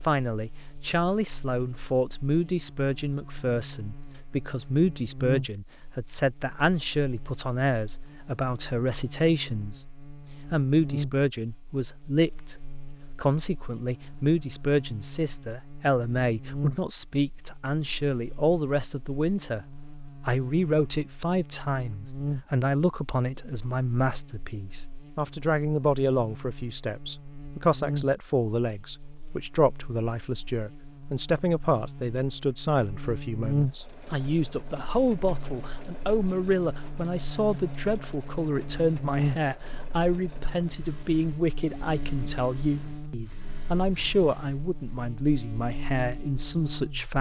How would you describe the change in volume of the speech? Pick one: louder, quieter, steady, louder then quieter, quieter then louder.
steady.